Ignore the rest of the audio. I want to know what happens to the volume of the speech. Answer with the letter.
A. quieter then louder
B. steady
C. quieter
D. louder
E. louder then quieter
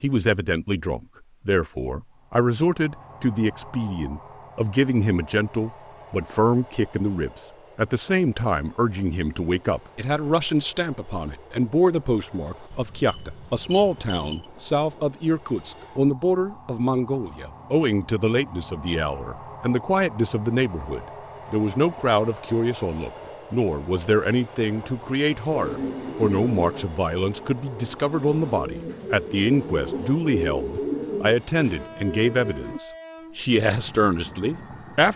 B.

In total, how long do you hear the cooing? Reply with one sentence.
You can hear the cooing for 7 seconds altogether.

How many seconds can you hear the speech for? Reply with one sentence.
You can hear the speech for 35 seconds altogether.